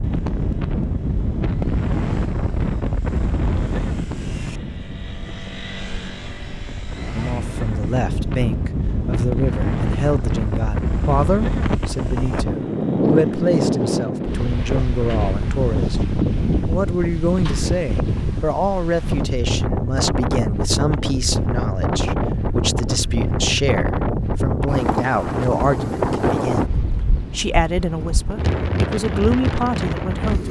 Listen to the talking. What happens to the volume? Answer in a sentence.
The loudness of the talking stays about the same.